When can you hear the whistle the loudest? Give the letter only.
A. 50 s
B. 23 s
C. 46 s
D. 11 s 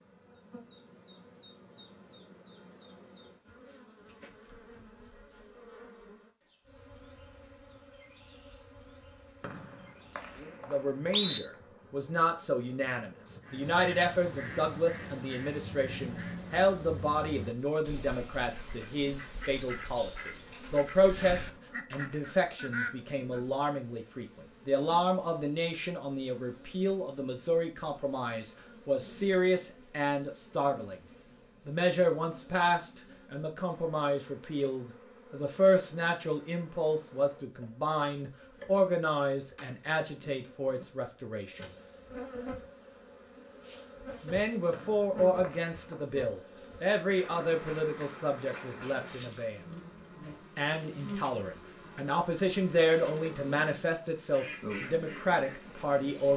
D.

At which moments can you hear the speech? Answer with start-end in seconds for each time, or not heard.
10.7-30.9, 31.6-41.6, 44.2-49.6, 50.5-56.3.